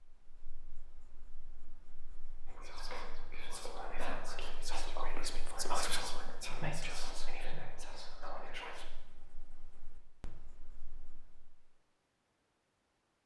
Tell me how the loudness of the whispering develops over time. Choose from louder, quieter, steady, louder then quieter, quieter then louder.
louder then quieter.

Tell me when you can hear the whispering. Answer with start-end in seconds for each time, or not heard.
2.5-8.8.